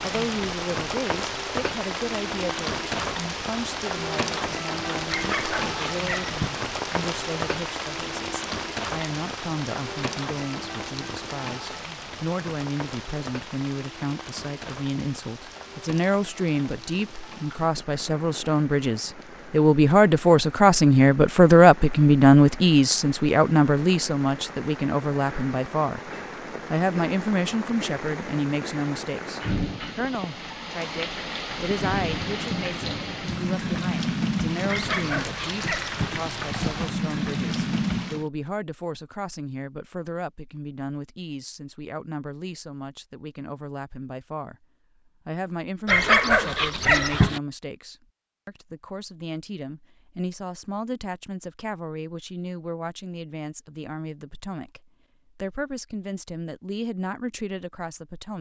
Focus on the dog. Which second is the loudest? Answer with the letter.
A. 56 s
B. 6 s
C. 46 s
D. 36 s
C.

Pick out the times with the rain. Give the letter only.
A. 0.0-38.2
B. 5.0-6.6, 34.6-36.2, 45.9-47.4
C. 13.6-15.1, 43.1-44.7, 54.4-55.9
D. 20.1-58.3
A.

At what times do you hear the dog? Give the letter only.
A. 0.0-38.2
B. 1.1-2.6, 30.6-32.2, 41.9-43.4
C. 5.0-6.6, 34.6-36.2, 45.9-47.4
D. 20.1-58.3
C.